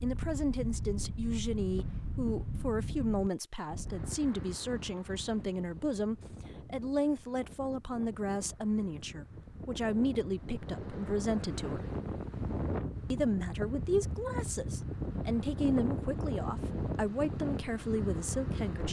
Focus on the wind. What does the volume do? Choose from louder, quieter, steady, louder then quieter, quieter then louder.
quieter then louder.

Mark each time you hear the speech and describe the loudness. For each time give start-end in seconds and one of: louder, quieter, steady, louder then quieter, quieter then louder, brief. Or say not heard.
0.0-11.8 steady
13.1-18.8 steady.